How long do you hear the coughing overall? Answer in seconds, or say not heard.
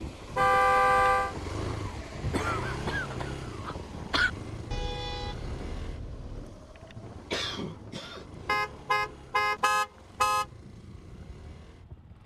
3 s.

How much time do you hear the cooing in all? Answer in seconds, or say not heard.
not heard.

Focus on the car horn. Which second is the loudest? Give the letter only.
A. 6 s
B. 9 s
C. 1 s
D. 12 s
C.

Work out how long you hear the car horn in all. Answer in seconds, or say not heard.
5 s.